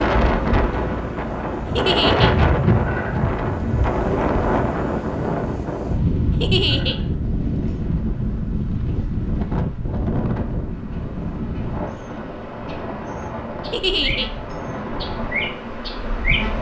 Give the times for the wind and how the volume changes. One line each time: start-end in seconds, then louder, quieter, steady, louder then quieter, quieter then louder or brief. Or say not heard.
0.0-16.5 quieter.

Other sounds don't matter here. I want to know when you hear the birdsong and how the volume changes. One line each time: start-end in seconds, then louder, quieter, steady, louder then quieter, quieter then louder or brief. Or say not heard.
not heard.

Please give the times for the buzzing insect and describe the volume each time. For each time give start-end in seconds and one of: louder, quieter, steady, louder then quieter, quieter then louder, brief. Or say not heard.
0.1-16.5 quieter then louder.